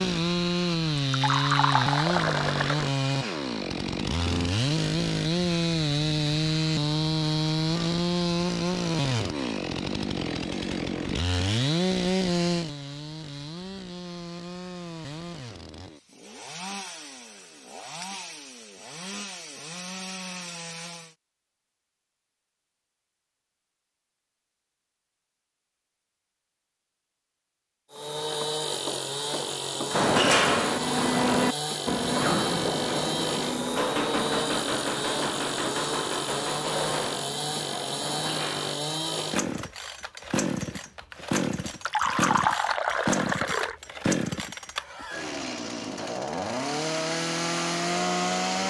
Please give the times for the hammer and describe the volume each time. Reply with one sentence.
The hammer can be heard from 29.9 to 38.8 s, getting quieter.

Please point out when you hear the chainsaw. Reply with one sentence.
The chainsaw can be heard from 0.0 to 21.1 s and from 27.9 to 48.6 s.